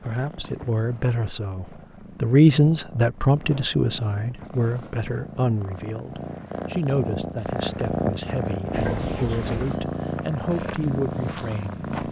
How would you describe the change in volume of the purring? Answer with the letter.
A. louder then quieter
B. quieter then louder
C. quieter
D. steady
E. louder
E.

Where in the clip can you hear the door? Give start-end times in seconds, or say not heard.
8.7-9.8.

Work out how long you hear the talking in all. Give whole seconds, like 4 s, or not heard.
12 s.